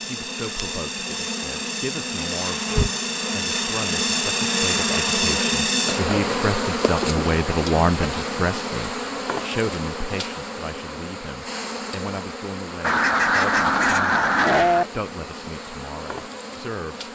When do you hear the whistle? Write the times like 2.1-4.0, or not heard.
not heard.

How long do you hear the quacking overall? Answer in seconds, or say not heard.
2 s.